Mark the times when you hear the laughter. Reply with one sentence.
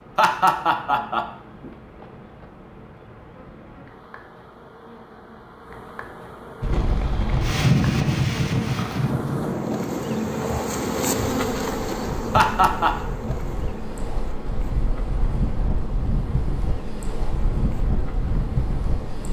The laughter can be heard from 0.1 to 1.7 s and from 12.3 to 12.9 s.